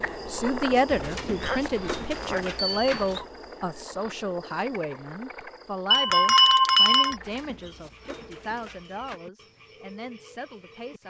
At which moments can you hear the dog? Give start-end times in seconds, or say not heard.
0.8-3.2, 7.1-9.2.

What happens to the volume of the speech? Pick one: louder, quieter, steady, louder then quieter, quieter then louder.
quieter.